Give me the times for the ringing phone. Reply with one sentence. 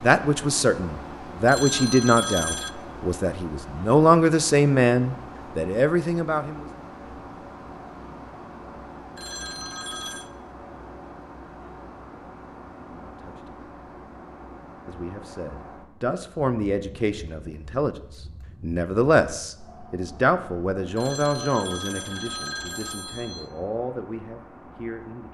The ringing phone can be heard from 1.4 to 2.8 s, from 9.2 to 10.3 s and from 20.9 to 23.5 s.